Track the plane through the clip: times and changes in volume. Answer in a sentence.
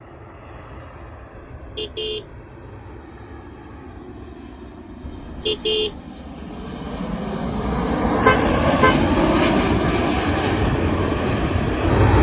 The plane can be heard from 0.0 to 12.1 s, getting louder.